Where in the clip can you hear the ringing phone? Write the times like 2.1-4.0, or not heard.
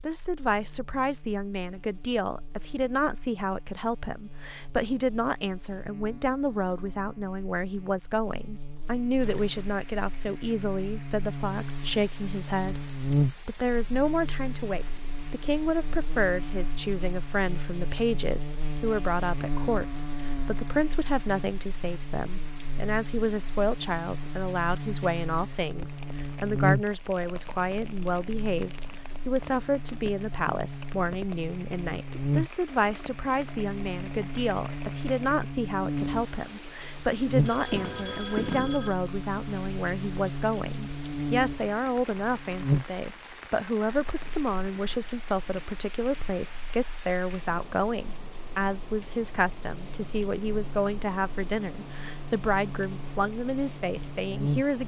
37.4-39.0.